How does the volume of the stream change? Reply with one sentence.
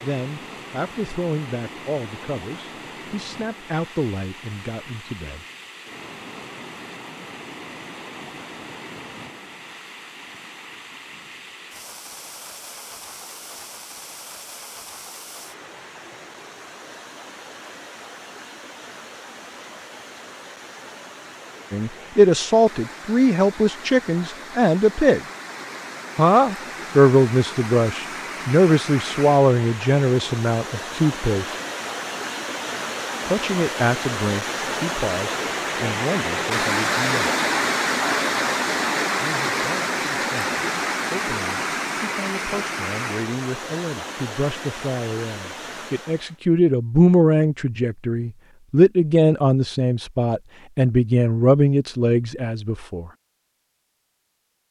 The loudness of the stream goes up.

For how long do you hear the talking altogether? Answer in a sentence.
The talking can be heard for 32 seconds in total.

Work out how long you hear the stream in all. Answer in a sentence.
You can hear the stream for 46 seconds altogether.